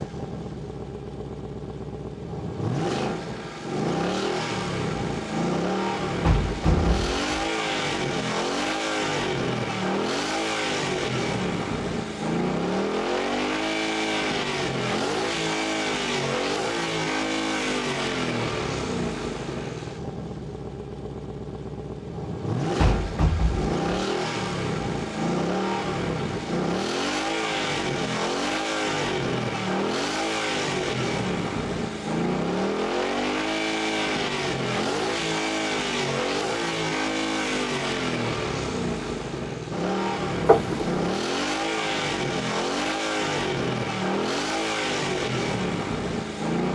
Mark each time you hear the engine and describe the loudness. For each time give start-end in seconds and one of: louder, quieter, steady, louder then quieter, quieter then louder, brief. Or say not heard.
0.0-46.6 steady.